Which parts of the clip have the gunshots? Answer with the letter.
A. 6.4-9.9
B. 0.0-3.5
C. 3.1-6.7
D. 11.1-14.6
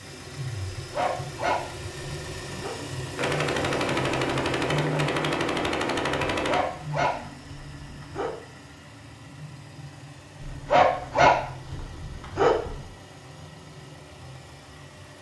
C.